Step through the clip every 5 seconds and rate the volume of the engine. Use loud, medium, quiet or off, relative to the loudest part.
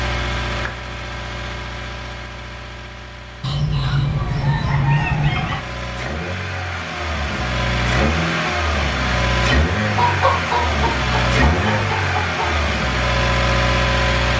medium, loud, loud.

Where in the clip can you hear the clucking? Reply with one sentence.
You can hear the clucking from 3.4 to 5.6 s and from 9.9 to 12.6 s.